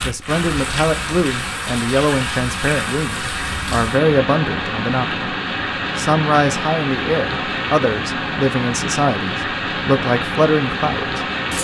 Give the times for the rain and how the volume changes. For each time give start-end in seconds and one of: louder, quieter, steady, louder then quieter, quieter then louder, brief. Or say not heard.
0.0-11.5 steady.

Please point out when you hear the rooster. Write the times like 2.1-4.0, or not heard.
not heard.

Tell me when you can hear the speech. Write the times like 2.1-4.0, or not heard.
0.0-5.2, 6.0-11.2.